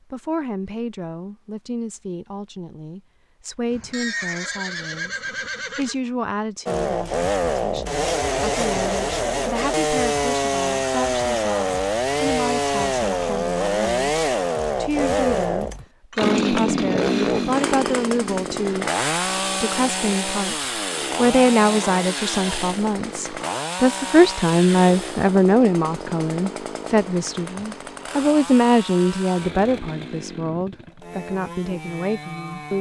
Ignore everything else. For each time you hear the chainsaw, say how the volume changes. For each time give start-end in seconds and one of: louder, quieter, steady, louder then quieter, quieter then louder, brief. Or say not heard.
6.7-32.7 quieter.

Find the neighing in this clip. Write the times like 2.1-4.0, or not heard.
3.7-6.0.